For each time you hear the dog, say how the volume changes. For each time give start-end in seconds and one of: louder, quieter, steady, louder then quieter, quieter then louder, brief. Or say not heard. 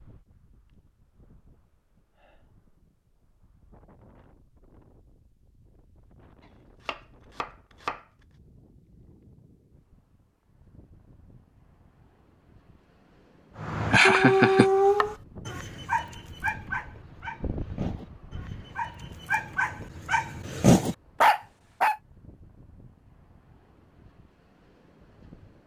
13.6-21.9 quieter then louder.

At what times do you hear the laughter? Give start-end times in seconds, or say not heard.
13.9-14.7.